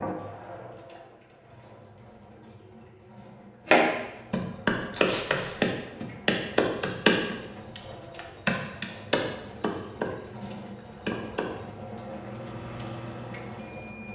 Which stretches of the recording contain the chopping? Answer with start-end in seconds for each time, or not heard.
3.6-11.5.